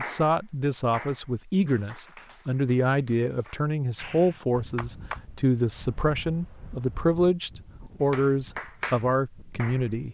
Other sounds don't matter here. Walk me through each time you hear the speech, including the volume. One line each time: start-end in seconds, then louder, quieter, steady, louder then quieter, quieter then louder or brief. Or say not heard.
0.0-10.0 steady.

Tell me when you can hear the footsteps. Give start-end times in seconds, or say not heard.
not heard.